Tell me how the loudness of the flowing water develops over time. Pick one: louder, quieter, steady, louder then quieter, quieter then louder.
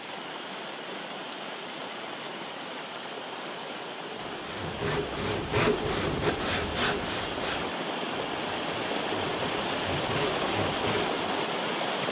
louder.